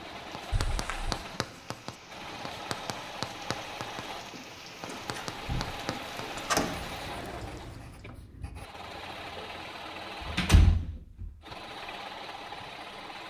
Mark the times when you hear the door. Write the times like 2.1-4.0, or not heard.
0.5-1.2, 4.9-7.0, 10.2-11.3.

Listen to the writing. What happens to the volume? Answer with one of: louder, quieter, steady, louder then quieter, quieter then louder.
quieter.